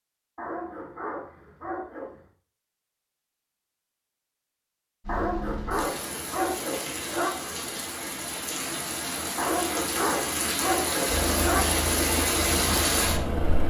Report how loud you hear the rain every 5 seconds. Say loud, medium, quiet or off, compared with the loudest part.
off, medium, loud.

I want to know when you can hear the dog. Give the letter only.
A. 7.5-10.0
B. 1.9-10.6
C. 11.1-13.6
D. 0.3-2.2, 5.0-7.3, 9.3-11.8
D.